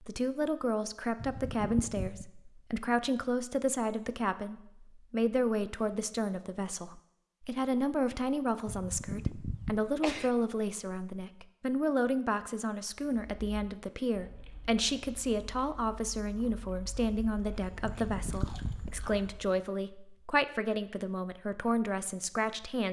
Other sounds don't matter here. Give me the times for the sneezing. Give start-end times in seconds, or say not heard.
1.1-2.2, 8.7-10.3, 17.8-18.9.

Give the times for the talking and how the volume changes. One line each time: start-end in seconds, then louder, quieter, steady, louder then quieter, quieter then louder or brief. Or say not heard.
0.0-22.8 steady.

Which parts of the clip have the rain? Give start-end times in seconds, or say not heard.
not heard.